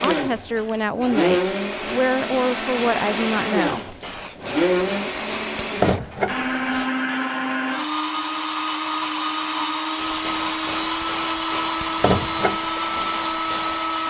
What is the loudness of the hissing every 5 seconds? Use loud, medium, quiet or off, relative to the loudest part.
medium, loud, loud.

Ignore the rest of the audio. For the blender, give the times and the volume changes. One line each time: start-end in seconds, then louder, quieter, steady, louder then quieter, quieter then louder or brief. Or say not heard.
0.0-14.0 steady.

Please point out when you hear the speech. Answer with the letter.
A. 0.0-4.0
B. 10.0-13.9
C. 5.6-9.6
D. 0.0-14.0
A.